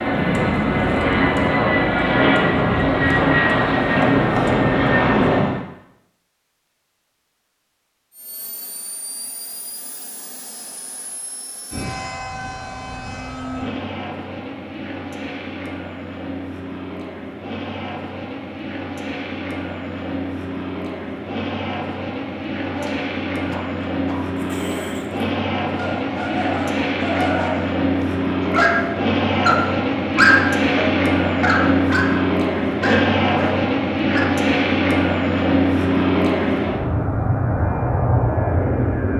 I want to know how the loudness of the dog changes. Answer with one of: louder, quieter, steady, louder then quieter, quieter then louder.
louder then quieter.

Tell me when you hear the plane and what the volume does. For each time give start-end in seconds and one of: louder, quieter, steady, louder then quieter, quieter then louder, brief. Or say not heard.
0.0-5.6 steady
8.1-39.1 louder.